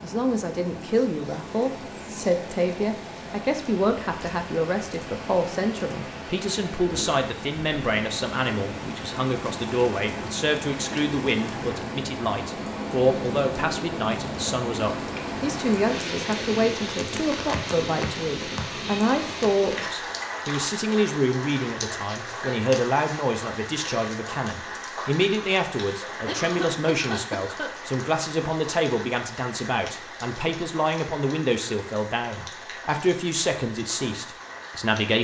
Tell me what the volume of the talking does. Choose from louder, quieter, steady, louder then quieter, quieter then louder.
steady.